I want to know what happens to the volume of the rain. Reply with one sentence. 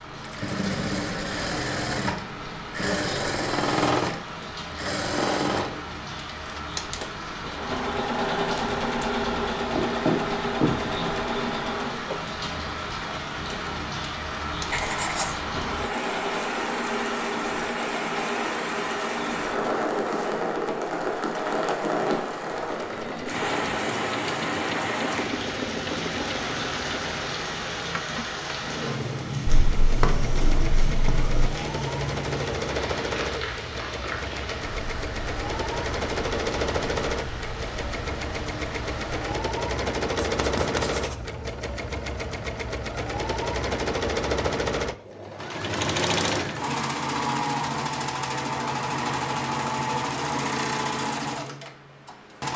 The volume of the rain goes up, then down.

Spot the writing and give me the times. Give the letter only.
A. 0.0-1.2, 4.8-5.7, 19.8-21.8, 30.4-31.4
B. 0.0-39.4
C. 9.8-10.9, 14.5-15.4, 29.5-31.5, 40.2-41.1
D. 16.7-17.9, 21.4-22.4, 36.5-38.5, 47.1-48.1
C.